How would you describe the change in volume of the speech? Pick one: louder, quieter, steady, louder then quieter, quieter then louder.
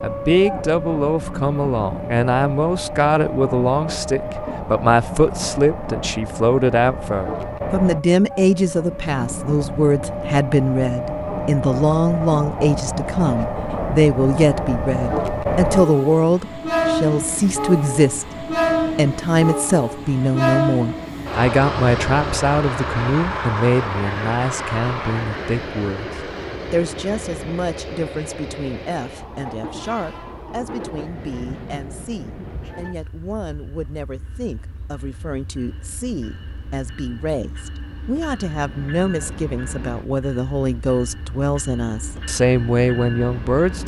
quieter then louder.